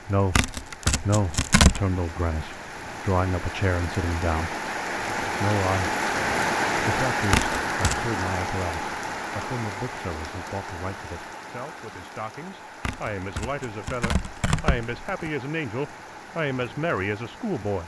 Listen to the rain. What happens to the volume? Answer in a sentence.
The volume of the rain goes up, then down.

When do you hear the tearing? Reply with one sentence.
The tearing can be heard from 0.3 to 1.8 s, from 7.3 to 8.0 s and from 12.8 to 15.3 s.